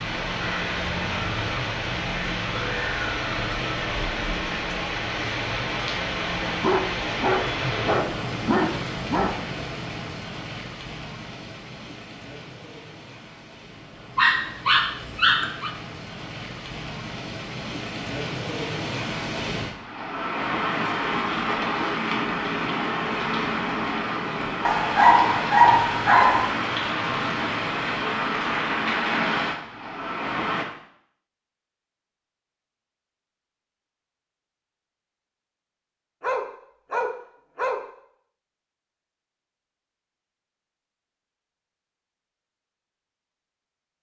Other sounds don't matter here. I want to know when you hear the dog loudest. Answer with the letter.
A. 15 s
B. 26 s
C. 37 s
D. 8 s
B.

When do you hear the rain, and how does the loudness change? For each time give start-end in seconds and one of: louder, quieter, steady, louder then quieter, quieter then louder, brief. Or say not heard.
0.0-30.6 quieter then louder.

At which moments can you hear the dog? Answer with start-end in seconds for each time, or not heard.
6.6-9.4, 14.2-15.7, 24.6-26.5, 36.2-37.9.